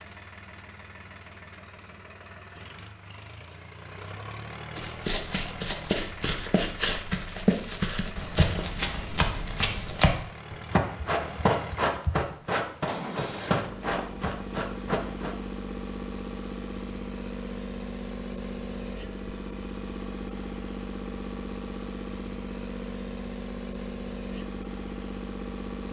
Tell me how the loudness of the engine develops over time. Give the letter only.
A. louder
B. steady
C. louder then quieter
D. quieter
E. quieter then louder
A.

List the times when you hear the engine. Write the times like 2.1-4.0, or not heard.
0.0-25.8.